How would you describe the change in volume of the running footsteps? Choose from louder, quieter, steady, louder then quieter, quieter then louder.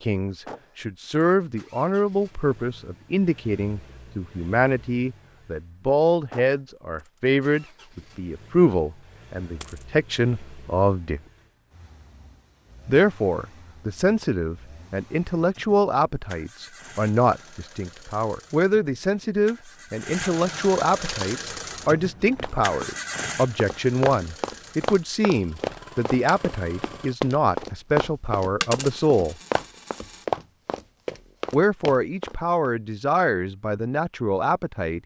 louder.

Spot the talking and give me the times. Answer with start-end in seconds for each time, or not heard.
0.0-11.2, 12.8-29.4, 31.5-35.0.